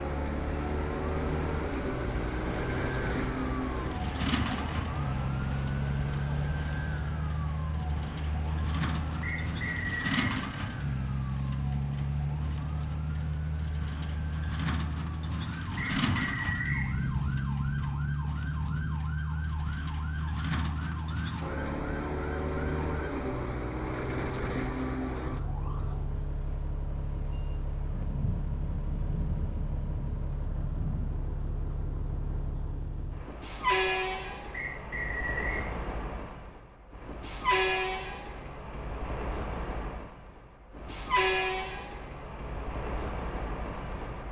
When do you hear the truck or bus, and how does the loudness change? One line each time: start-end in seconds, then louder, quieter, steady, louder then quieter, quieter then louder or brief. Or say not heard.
0.0-44.2 steady.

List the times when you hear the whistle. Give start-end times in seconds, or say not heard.
9.2-10.3, 15.8-16.9, 34.5-35.6.